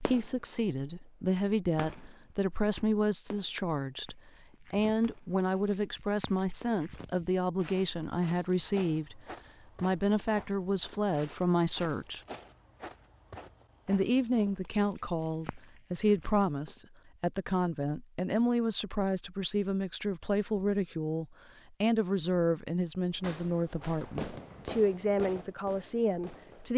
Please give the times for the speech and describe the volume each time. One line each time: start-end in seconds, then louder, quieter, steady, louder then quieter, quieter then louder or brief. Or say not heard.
0.0-9.2 steady
9.8-12.2 brief
13.8-26.7 steady.